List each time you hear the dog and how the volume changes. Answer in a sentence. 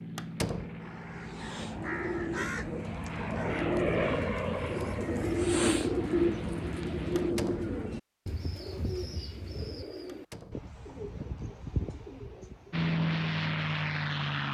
The dog can't be heard in this clip.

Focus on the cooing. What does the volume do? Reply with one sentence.
The volume of the cooing goes up, then down.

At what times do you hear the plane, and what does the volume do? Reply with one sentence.
You can hear the plane from 0.0 to 7.3 s, getting louder then quieter; and briefly from 12.7 to 14.4 s.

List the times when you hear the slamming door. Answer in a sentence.
You can hear the slamming door from 0.1 to 0.8 s, from 7.2 to 7.8 s and from 10.1 to 10.7 s.